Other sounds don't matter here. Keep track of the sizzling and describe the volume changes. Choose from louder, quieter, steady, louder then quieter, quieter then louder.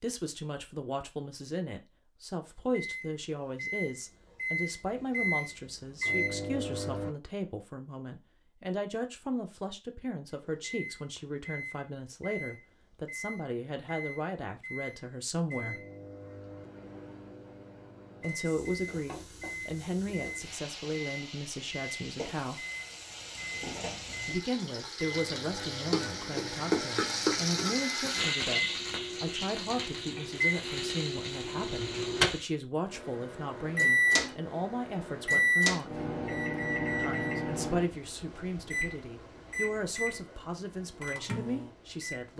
louder then quieter.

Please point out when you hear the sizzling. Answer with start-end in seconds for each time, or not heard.
18.4-32.5.